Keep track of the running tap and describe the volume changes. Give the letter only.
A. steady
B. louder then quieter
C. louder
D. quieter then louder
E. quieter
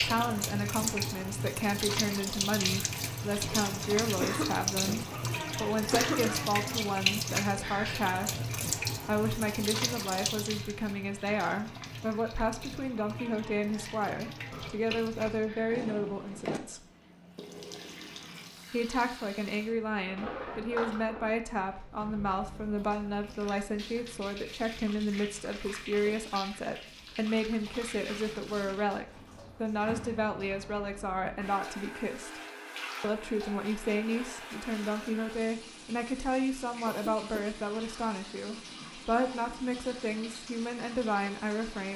E.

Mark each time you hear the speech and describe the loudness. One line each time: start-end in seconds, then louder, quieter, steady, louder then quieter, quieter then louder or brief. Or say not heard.
0.1-16.8 steady
18.7-32.4 steady
33.0-41.9 steady.